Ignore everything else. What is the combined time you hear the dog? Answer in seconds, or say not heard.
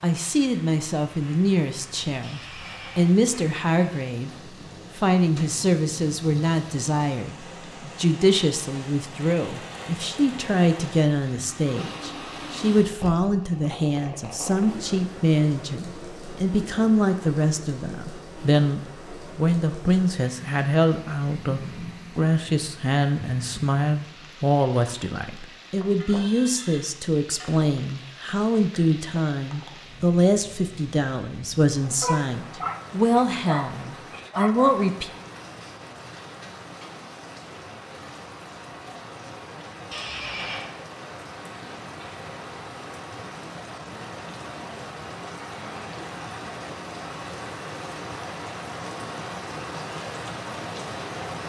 3 s.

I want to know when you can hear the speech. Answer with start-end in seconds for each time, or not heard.
0.0-4.3, 5.0-35.1.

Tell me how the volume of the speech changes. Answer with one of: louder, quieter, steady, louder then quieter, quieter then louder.
steady.